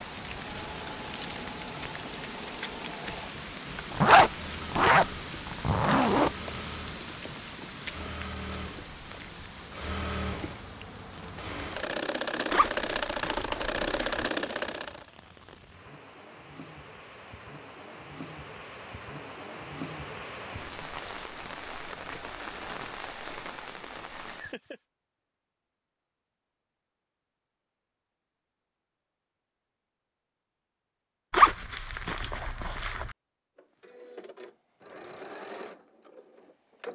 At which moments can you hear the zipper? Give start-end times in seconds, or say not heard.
3.9-6.3, 12.5-14.3, 31.3-33.1.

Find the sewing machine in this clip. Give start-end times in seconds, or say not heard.
0.0-15.1, 33.5-36.9.